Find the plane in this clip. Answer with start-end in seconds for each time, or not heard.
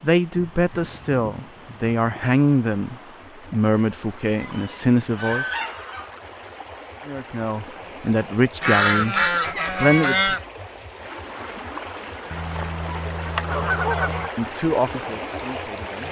not heard.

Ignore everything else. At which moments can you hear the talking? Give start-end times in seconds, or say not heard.
0.0-5.5, 7.0-10.3, 14.3-16.0.